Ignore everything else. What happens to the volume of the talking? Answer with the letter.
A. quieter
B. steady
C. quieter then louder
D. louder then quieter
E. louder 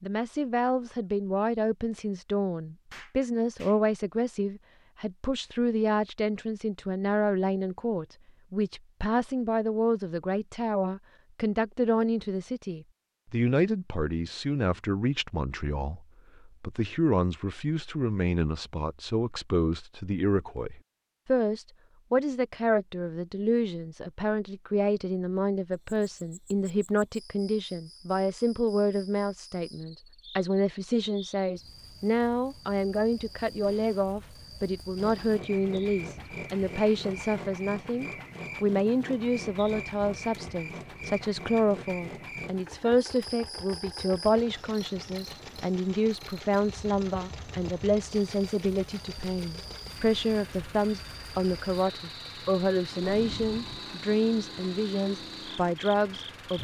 B.